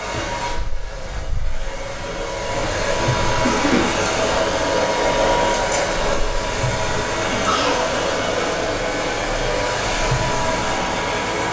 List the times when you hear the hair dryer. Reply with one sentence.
The hair dryer can be heard from 0.0 to 11.4 s.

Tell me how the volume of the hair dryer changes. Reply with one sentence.
The volume of the hair dryer goes up.